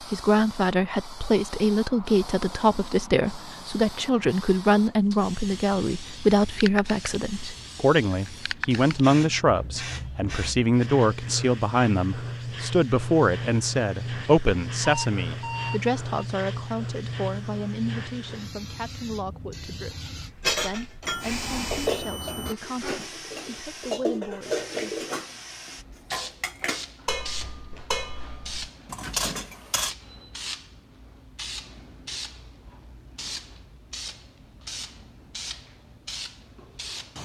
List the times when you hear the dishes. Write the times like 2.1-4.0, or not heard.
20.4-25.3, 26.1-29.9.